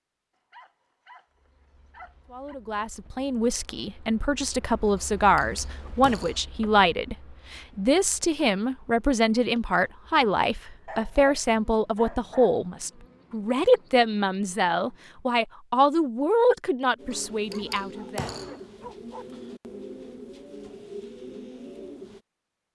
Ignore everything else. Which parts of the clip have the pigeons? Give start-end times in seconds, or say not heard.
16.9-22.2.